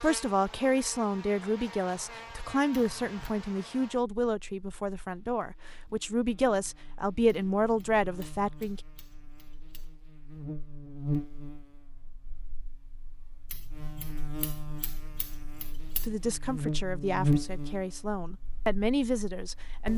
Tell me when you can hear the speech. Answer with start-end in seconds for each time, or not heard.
0.0-8.8, 16.0-19.9.